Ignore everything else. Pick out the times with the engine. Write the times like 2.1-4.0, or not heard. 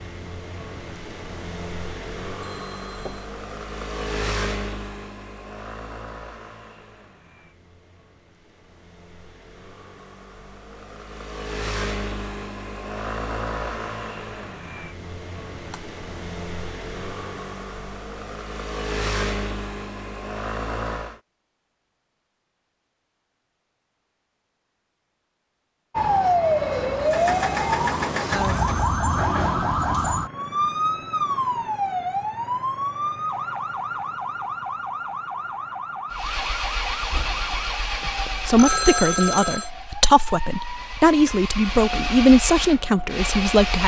0.0-21.2, 26.9-28.9, 36.1-43.8.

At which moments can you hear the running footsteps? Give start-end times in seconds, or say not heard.
not heard.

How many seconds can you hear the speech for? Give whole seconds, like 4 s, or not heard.
5 s.